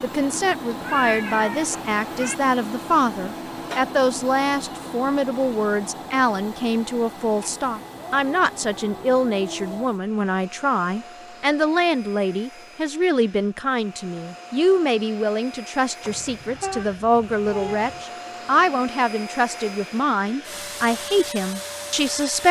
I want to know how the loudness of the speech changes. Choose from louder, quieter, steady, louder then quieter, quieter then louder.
steady.